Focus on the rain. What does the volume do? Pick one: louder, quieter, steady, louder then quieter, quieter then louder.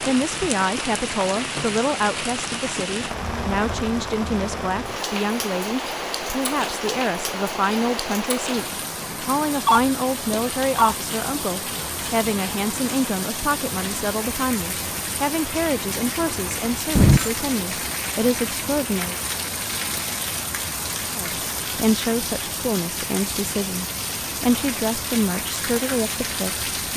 steady.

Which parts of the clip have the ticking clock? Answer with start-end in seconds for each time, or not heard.
not heard.